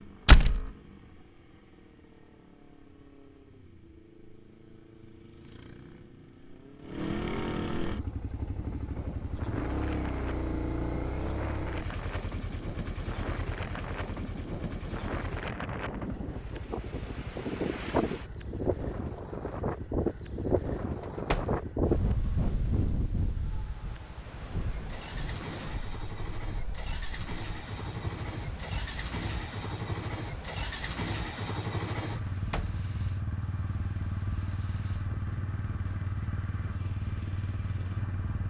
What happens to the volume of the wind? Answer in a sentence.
The volume of the wind goes up, then down.